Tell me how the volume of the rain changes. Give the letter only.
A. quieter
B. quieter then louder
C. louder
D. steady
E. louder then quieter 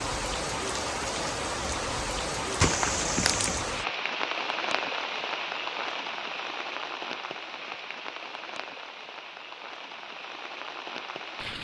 A.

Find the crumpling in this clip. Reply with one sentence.
The crumpling can be heard from 2.6 to 3.6 s.